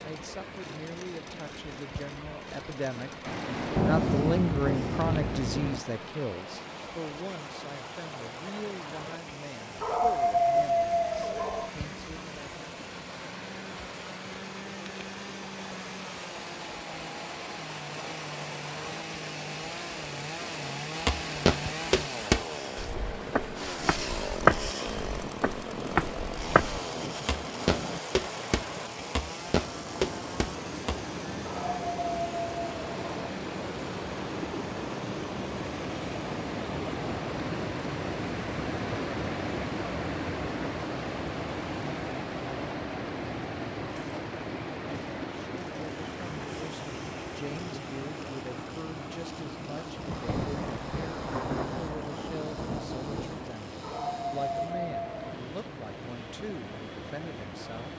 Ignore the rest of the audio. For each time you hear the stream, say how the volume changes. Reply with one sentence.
You can hear the stream from 0.0 to 57.9 s, getting louder then quieter.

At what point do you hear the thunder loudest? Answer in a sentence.
The volume of the thunder peaks at 4 seconds.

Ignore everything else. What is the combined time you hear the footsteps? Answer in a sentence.
The footsteps can be heard for 10 seconds in total.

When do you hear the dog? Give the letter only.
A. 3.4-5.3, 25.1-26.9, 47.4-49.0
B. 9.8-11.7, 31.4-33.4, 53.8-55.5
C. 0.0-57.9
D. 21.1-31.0
B.